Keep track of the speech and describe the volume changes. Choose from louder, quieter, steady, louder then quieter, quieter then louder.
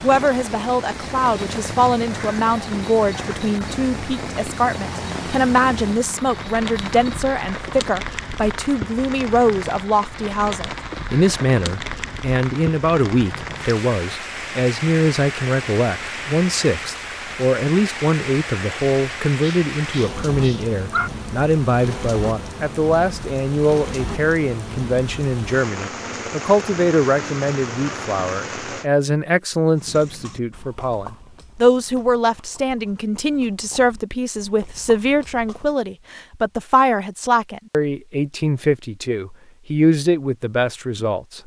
steady.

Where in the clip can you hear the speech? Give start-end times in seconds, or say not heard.
0.0-41.4.